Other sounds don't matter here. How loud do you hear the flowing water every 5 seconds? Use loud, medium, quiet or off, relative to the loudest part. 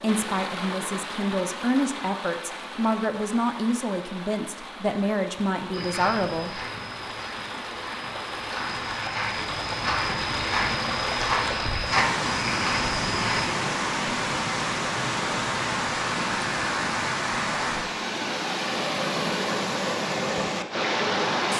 medium, medium, loud, loud, loud.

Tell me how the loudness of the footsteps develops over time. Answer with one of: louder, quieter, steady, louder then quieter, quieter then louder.
louder.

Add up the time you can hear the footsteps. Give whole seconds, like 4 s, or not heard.
8 s.